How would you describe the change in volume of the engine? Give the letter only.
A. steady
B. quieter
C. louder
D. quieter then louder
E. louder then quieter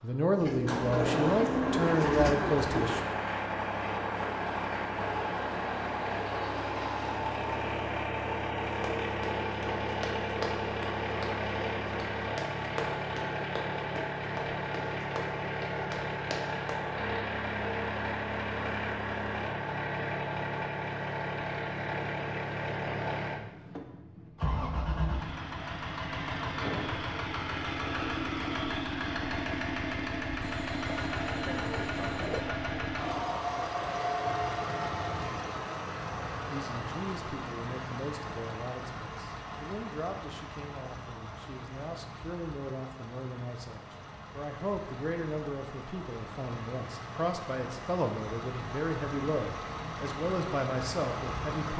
B.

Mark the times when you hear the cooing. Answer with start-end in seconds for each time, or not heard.
0.4-3.0, 30.4-32.5.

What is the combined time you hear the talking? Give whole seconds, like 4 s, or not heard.
18 s.